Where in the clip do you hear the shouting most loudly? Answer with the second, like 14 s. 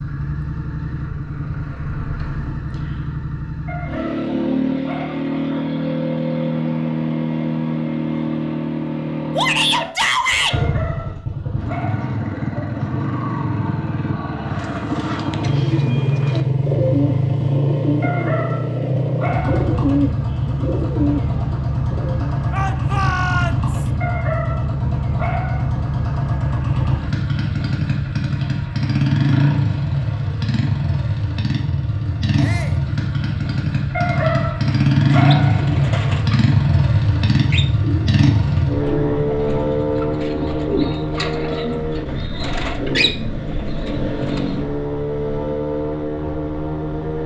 10 s.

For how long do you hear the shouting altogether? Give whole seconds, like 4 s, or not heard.
3 s.